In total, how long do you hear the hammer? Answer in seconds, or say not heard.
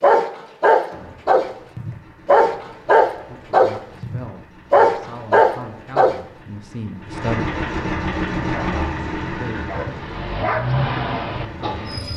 not heard.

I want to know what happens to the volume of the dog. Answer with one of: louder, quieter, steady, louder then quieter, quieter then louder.
quieter.